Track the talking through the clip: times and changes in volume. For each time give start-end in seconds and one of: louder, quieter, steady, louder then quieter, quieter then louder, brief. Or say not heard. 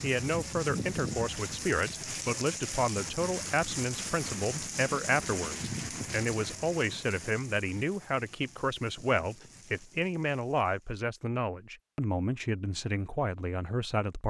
0.0-14.2 steady.